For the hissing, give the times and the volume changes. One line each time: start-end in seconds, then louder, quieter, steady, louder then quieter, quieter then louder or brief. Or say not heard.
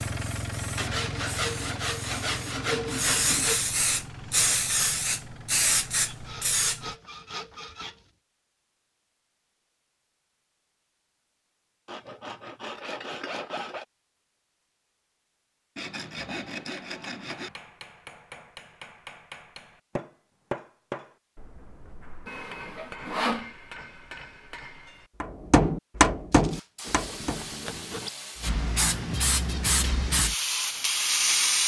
0.0-7.0 louder
26.3-31.6 louder.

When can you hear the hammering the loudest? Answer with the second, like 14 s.
26 s.